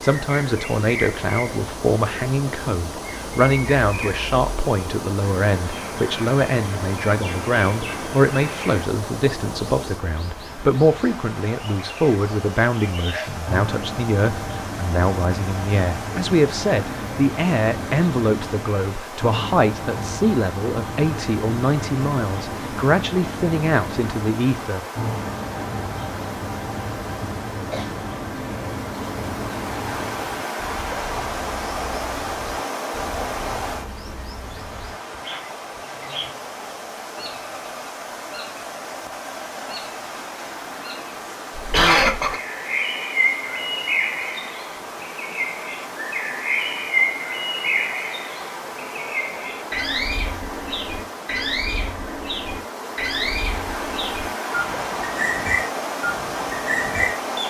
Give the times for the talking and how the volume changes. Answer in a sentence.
You can hear the talking from 0.0 to 24.9 s, at a steady volume.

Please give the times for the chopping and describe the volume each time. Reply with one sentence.
You can't hear the chopping here.